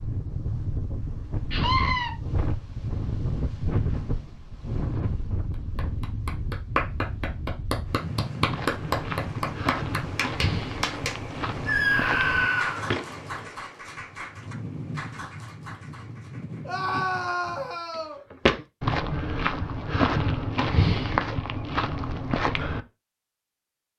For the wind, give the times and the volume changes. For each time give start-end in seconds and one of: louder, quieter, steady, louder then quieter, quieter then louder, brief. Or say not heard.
0.0-17.9 quieter.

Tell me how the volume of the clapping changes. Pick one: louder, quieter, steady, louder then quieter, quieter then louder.
quieter.